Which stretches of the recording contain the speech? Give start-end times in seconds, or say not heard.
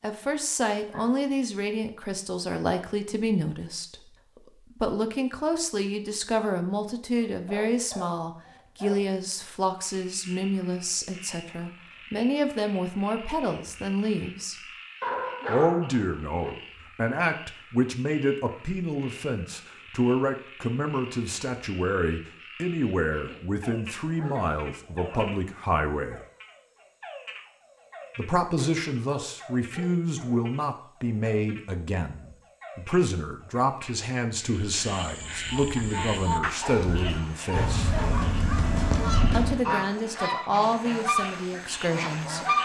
0.0-4.1, 4.8-14.6, 15.4-26.2, 28.1-37.9, 39.3-42.5.